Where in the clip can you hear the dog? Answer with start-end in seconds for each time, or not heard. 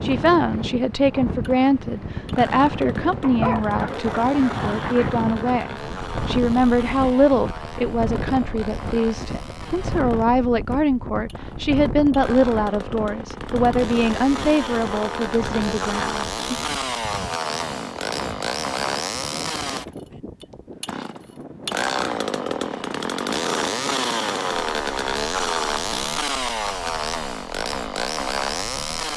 3.2-4.8.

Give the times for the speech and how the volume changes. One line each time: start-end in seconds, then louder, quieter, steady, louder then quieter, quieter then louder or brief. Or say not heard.
0.0-16.6 steady.